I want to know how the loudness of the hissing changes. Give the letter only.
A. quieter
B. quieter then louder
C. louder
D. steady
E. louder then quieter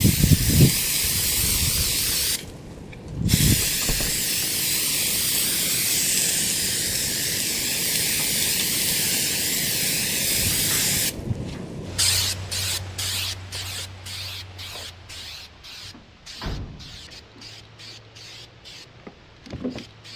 A.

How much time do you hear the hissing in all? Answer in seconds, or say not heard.
20 s.